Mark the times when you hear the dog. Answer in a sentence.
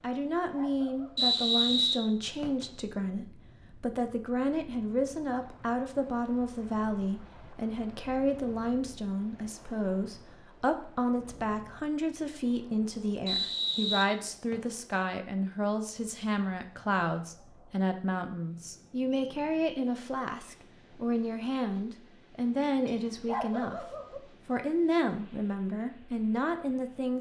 You can hear the dog from 0.1 to 1.4 s and from 22.9 to 24.2 s.